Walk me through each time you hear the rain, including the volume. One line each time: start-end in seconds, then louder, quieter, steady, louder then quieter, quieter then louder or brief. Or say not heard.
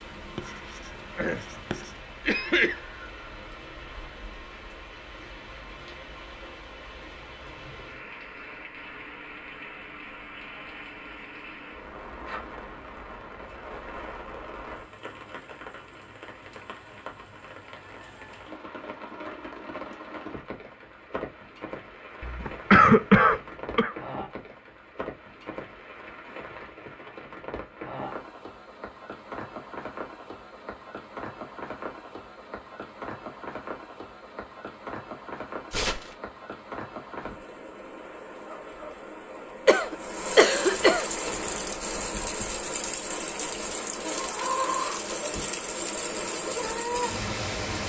0.0-47.8 louder.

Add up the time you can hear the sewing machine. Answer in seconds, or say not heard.
not heard.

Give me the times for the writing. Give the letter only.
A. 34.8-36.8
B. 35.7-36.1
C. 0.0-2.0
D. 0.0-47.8
C.